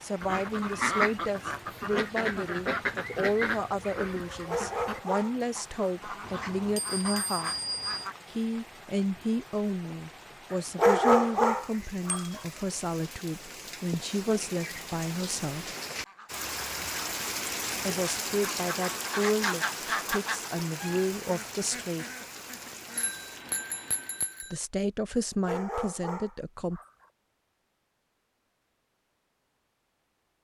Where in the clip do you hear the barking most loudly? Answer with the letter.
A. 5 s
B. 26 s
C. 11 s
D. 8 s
C.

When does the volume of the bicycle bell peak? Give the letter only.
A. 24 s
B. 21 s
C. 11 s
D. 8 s
D.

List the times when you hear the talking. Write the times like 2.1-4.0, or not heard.
0.0-7.5, 8.3-15.7, 17.9-22.1, 24.4-26.8.